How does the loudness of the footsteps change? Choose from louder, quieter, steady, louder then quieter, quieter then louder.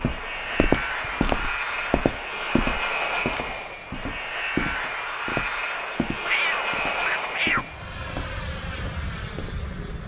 quieter.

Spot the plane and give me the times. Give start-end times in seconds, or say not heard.
0.0-10.0.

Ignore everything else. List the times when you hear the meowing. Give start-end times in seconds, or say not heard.
6.2-7.7.